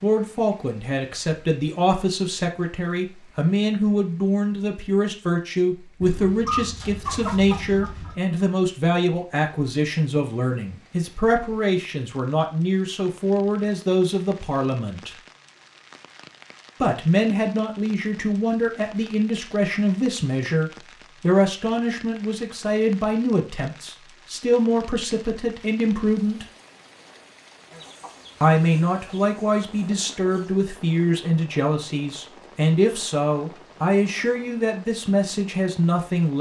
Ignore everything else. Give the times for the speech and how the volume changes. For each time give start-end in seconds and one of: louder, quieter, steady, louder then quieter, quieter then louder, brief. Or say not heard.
0.0-15.2 steady
16.8-26.4 steady
28.4-36.3 steady.